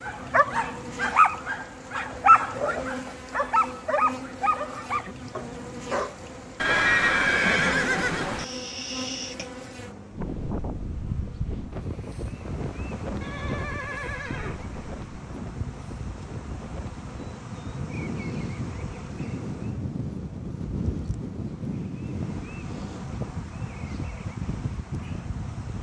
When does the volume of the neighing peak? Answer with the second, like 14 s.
7 s.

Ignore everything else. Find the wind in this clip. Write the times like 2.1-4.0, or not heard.
10.1-25.7.